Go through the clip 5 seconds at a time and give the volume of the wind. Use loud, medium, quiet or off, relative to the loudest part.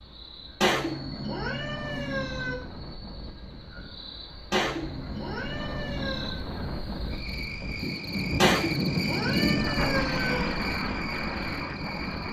quiet, loud, loud.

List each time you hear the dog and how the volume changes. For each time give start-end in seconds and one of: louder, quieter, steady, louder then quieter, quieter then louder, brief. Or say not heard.
not heard.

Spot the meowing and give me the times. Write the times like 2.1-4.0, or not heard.
0.6-2.5, 4.5-6.4, 8.4-10.4.